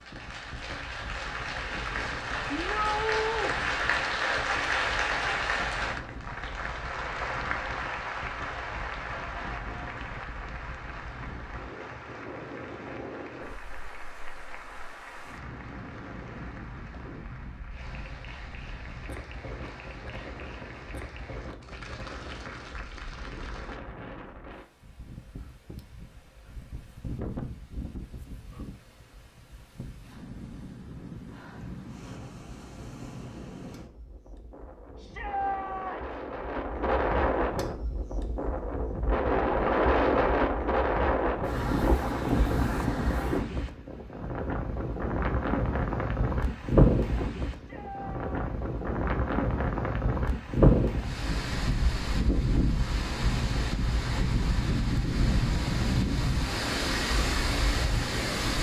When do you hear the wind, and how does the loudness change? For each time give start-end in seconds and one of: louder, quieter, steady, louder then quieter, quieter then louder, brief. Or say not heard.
0.0-58.5 louder.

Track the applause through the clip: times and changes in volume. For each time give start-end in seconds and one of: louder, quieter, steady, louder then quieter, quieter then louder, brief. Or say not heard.
0.0-23.8 quieter.